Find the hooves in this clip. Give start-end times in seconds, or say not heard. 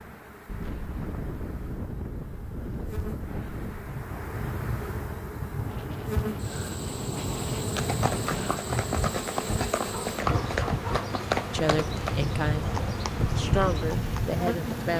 7.8-14.3.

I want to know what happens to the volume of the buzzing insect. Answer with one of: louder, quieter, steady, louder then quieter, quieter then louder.
louder.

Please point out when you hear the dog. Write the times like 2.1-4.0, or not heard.
9.9-11.2.